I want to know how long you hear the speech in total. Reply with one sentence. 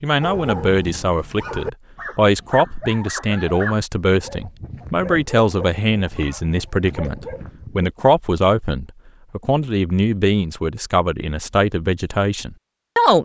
You can hear the speech for 13 seconds altogether.